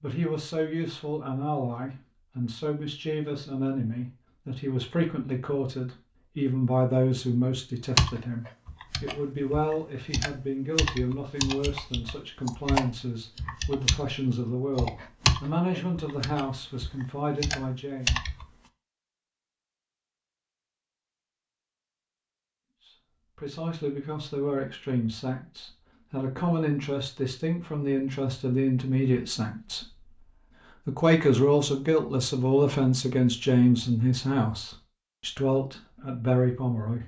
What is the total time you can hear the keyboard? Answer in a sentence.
The keyboard can be heard for 10 seconds in total.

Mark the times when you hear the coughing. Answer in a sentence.
You can't hear the coughing here.